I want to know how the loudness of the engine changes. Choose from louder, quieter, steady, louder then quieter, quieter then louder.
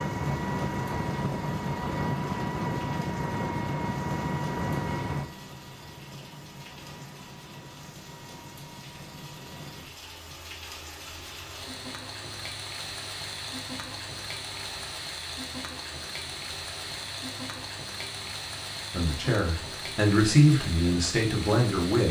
quieter.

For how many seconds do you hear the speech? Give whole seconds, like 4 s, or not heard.
3 s.